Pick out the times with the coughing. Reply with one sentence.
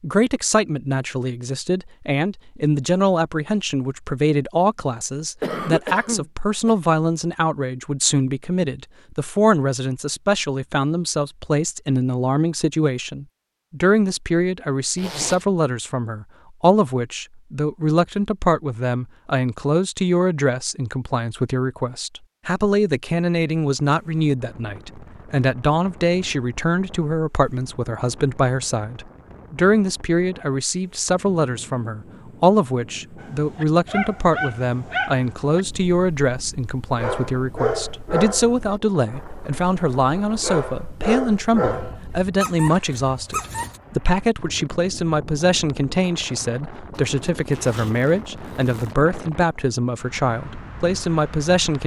The coughing can be heard from 5.4 to 6.8 s.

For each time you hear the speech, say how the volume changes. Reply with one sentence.
You can hear the speech from 0.0 to 51.8 s, at a steady volume.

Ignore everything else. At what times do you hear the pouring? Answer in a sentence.
You can't hear the pouring here.